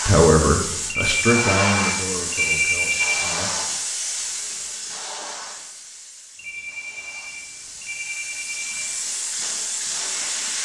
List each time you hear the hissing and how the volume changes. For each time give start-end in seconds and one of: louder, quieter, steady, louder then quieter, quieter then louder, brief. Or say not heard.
0.0-10.6 quieter then louder.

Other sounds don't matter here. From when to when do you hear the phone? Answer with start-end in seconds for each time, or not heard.
0.9-3.4, 6.3-8.8.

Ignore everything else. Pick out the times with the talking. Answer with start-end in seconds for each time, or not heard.
0.1-3.5.